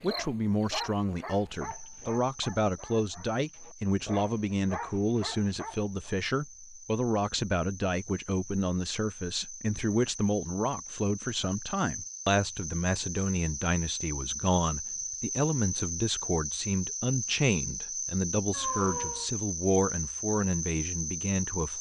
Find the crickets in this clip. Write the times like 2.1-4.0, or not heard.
0.0-21.7.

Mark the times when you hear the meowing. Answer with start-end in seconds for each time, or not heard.
18.5-19.3.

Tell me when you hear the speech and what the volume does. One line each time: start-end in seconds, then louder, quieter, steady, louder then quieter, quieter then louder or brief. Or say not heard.
0.0-21.7 steady.